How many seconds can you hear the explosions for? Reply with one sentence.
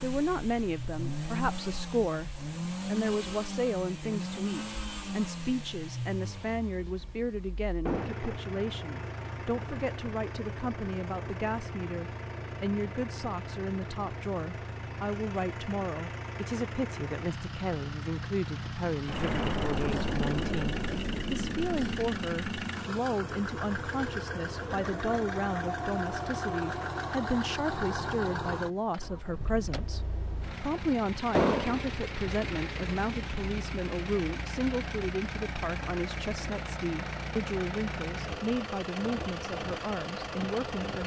The explosions can be heard for 5 seconds in total.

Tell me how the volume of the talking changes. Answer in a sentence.
The loudness of the talking stays about the same.